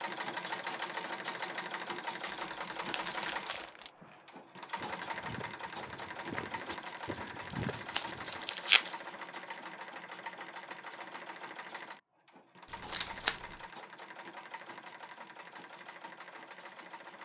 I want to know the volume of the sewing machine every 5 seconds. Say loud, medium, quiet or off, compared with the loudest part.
loud, loud, medium, medium.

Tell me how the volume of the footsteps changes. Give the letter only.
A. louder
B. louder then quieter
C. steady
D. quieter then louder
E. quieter
A.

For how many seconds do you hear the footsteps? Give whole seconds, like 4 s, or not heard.
5 s.